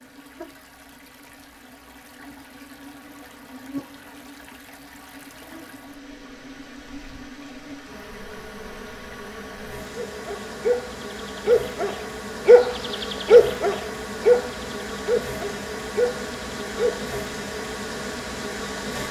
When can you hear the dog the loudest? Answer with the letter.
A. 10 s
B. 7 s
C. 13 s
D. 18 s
C.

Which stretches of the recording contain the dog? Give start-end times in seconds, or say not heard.
10.1-17.1.